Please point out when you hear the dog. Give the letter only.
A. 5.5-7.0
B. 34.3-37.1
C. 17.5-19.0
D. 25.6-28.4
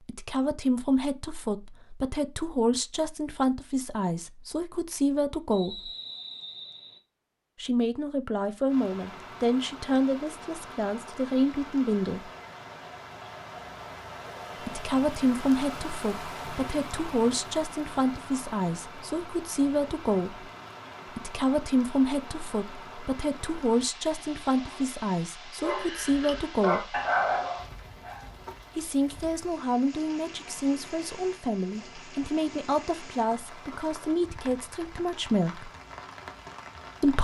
D.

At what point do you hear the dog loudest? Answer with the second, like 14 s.
27 s.